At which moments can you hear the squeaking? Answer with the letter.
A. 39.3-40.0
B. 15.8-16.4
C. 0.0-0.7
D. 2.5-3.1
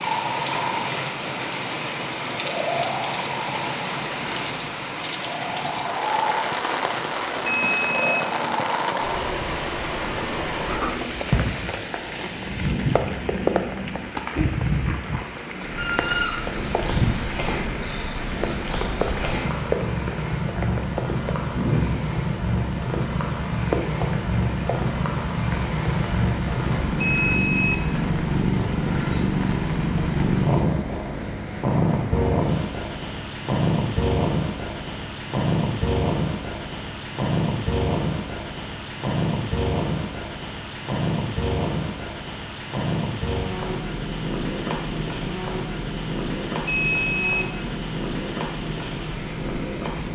B.